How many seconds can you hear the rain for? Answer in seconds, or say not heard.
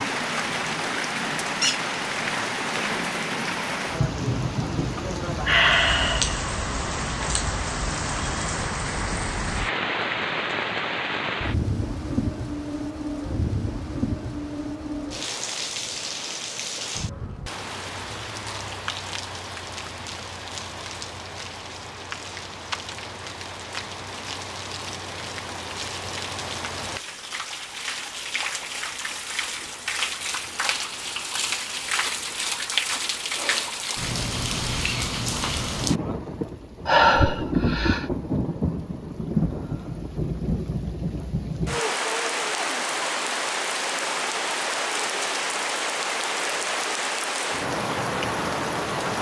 49 s.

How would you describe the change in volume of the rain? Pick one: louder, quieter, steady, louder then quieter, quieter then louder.
quieter then louder.